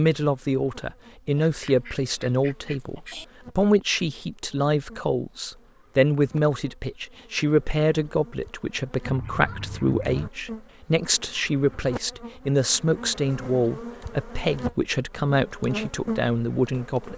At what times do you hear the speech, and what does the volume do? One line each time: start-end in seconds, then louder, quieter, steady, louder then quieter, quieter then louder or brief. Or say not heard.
0.0-17.1 steady.